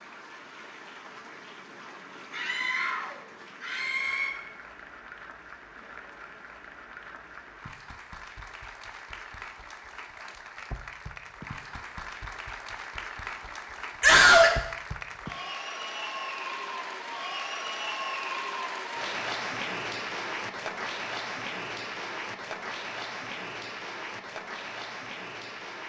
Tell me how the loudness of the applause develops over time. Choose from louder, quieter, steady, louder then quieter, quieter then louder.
louder.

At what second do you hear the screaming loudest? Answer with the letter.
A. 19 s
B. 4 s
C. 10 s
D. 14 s
D.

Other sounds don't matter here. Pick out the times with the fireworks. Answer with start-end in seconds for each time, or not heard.
not heard.